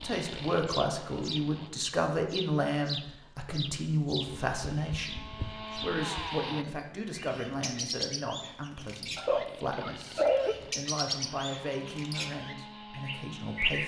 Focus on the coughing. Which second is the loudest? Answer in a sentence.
The volume of the coughing peaks at 10 seconds.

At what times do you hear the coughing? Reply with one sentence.
The coughing can be heard from 9.2 to 10.6 s.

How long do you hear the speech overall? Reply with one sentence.
You can hear the speech for 14 seconds altogether.